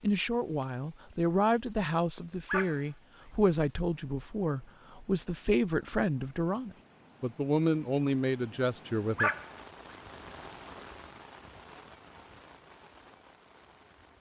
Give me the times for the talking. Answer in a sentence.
You can hear the talking from 0.0 to 9.3 s.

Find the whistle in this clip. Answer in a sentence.
The whistle can't be heard in this clip.